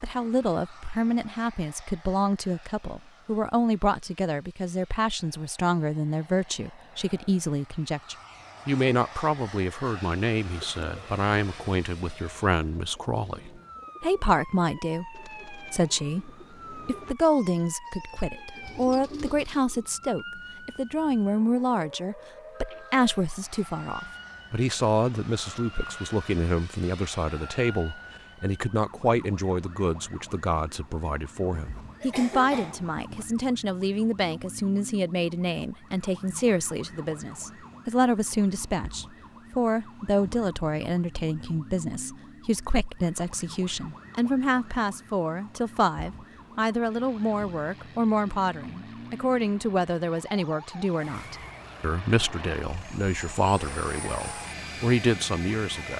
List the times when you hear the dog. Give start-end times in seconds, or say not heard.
not heard.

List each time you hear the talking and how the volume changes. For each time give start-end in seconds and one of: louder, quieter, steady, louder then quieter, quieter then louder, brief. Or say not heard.
0.0-55.9 steady.